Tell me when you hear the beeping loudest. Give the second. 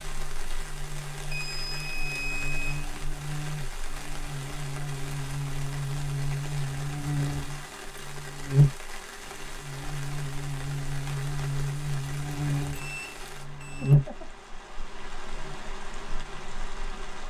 2 s.